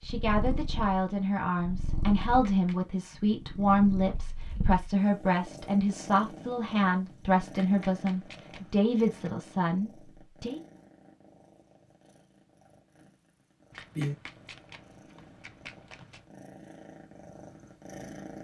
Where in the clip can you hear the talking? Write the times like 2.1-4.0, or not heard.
0.1-10.6.